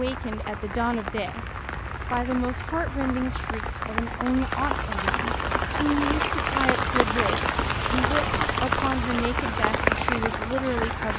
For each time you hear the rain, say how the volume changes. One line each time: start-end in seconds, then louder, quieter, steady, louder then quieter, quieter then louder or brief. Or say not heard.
0.0-11.1 louder.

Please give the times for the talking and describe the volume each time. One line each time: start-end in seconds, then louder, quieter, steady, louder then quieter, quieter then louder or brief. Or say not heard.
0.0-1.4 brief
2.1-11.1 steady.